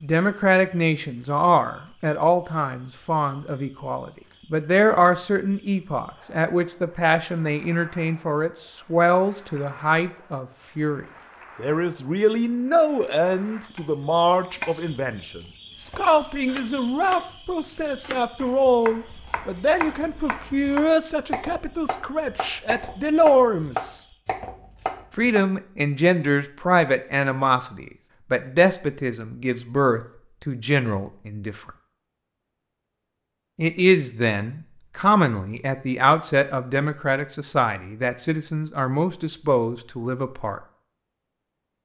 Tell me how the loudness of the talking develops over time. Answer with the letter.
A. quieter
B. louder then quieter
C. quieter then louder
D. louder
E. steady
E.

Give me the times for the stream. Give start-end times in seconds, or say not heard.
not heard.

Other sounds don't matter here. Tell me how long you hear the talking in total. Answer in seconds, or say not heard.
38 s.